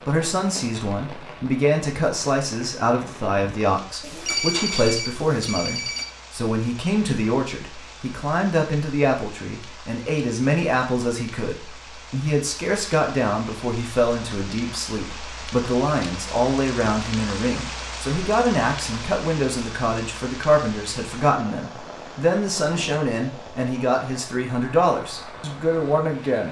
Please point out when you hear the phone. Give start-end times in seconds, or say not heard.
4.0-6.0.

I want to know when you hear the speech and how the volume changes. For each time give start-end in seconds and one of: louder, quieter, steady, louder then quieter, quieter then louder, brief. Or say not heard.
0.0-26.4 steady.